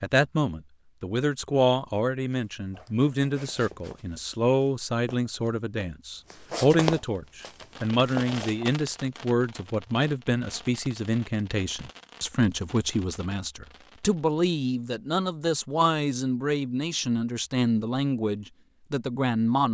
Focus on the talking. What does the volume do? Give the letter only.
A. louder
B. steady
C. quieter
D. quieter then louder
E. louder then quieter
B.